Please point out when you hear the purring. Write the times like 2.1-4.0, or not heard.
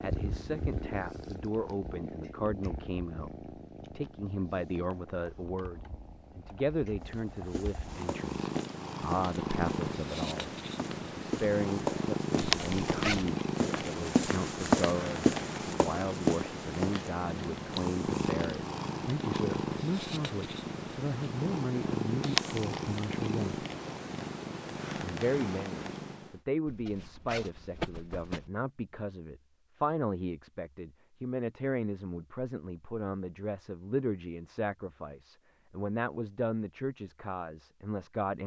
0.0-26.4.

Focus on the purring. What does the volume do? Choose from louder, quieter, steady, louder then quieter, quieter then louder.
louder.